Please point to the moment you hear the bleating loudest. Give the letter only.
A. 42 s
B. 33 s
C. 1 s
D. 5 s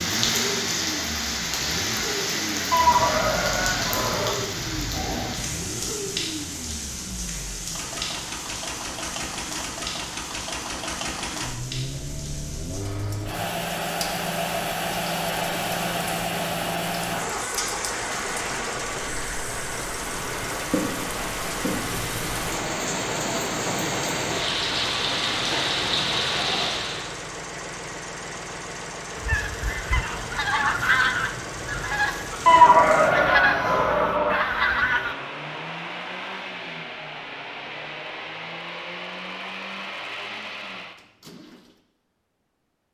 B.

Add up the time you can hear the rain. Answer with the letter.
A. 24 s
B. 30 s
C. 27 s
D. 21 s
C.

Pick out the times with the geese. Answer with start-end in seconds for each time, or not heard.
29.1-35.1.